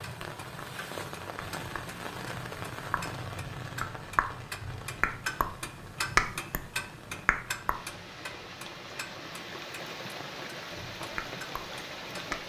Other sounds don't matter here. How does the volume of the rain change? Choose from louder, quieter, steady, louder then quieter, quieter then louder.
quieter then louder.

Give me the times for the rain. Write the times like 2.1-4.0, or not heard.
0.0-12.4.